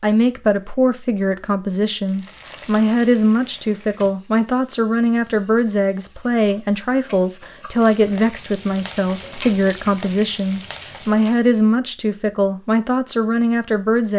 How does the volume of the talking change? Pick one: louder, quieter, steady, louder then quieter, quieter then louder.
steady.